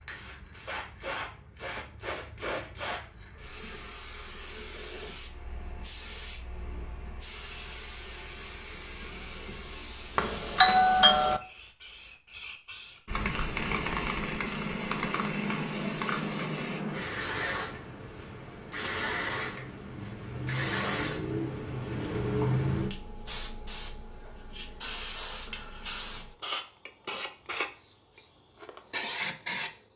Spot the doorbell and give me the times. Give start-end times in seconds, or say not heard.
10.2-11.4.